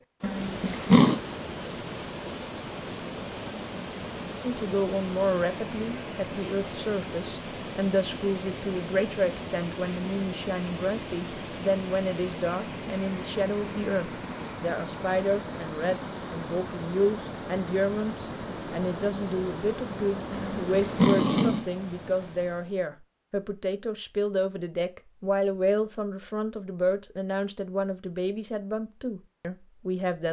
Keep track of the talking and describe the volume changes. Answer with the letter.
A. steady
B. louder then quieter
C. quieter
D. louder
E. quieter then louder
A.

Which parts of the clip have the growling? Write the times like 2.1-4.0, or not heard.
0.2-1.2, 20.3-21.6.